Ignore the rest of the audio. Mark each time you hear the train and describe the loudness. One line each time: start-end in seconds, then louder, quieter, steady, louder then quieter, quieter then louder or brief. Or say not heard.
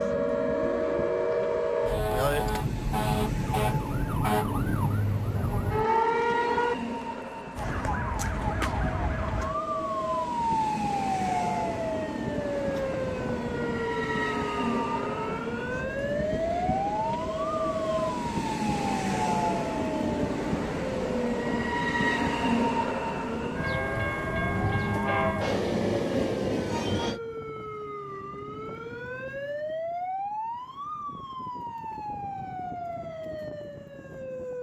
0.0-27.2 louder.